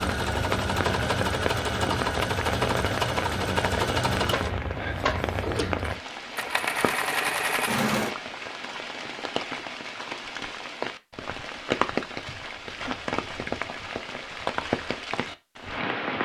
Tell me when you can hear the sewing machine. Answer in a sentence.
You can hear the sewing machine from 0.0 to 8.2 s.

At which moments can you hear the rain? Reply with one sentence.
The rain can be heard from 0.0 to 16.2 s.